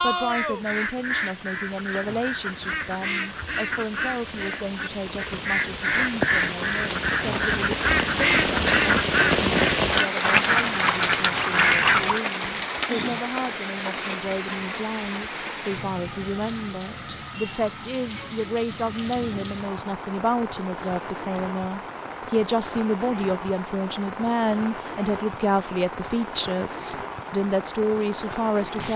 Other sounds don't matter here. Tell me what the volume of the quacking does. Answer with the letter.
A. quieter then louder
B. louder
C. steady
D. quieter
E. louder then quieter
B.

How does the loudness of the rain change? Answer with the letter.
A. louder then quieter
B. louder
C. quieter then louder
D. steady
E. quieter
A.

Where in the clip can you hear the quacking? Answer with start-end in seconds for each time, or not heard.
0.2-12.2.